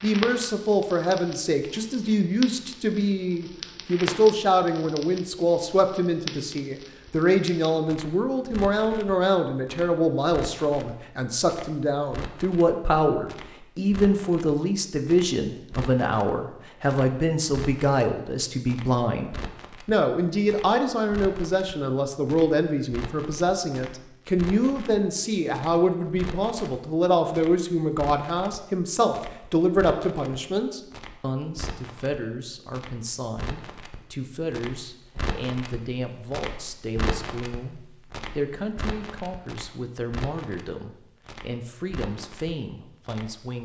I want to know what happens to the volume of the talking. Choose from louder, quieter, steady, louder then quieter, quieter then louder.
quieter.